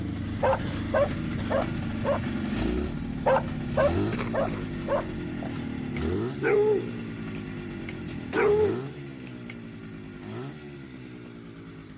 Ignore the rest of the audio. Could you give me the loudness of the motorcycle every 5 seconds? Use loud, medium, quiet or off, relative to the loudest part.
loud, loud, medium.